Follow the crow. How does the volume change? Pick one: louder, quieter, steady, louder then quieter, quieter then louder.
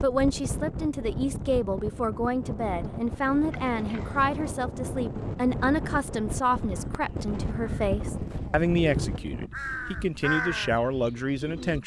louder then quieter.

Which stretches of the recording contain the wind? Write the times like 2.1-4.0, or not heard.
0.0-9.5.